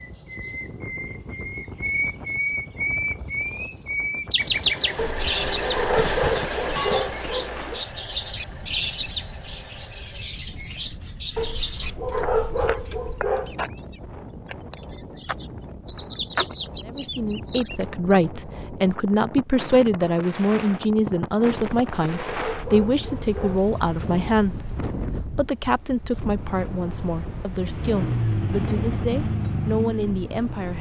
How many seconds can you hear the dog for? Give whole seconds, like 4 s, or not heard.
7 s.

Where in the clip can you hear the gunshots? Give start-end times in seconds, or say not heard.
not heard.